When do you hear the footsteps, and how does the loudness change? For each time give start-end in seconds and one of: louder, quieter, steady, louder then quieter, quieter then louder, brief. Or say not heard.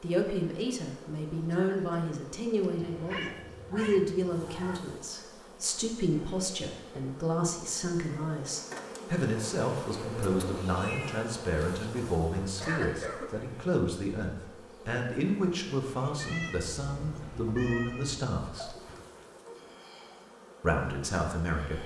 not heard.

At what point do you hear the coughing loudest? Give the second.
13 s.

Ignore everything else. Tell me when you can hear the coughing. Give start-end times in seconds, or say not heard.
1.5-2.1, 12.6-13.3.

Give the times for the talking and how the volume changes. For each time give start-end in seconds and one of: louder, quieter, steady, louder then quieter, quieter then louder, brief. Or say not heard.
0.0-18.8 steady
20.6-21.8 brief.